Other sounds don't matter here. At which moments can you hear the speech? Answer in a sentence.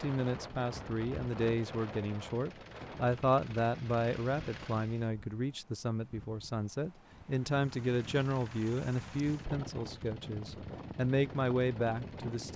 You can hear the speech from 0.0 to 12.5 s.